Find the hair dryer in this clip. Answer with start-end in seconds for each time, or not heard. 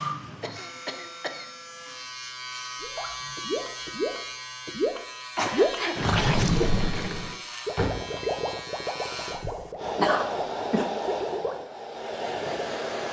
9.8-13.0.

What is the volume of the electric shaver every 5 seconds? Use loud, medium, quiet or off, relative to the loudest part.
loud, loud, off.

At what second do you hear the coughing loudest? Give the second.
10 s.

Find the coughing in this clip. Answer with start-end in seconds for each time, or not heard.
0.4-1.5, 5.3-6.0, 9.2-10.8.